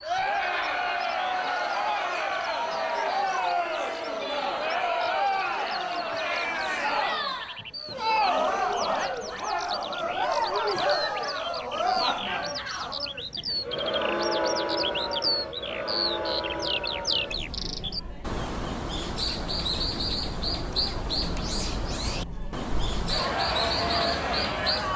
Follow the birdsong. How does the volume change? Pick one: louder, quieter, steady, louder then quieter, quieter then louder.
louder.